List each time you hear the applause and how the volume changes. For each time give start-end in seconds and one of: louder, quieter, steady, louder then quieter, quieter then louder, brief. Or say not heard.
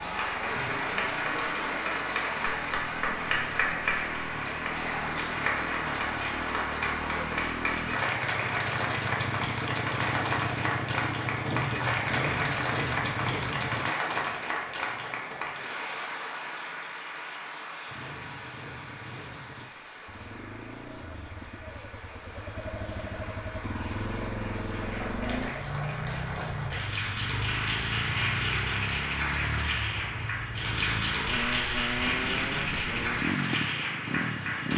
0.0-34.7 quieter then louder.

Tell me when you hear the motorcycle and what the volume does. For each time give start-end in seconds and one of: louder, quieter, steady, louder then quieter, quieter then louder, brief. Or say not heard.
0.0-13.9 louder
17.9-34.7 louder.